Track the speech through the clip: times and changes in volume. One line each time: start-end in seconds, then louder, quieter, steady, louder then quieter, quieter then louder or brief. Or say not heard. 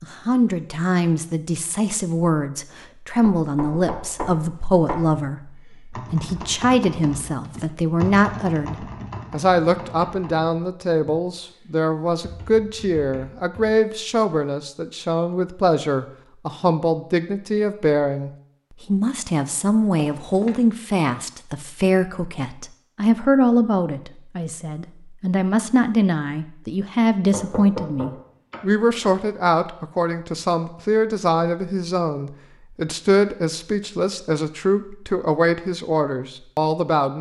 0.0-37.1 steady.